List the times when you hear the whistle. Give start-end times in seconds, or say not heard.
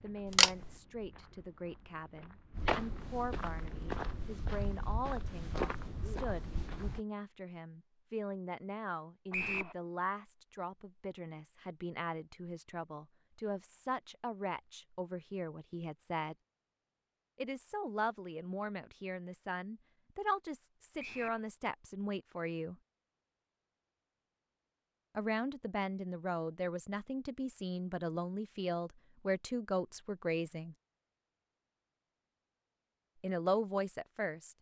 9.3-9.8, 20.9-21.4.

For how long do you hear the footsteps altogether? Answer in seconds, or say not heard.
7 s.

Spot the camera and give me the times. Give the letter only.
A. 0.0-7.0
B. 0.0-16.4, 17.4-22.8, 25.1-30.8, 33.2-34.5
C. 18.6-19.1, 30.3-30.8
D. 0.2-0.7
D.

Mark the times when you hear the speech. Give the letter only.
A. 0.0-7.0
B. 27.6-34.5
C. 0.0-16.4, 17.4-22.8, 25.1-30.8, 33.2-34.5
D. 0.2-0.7
C.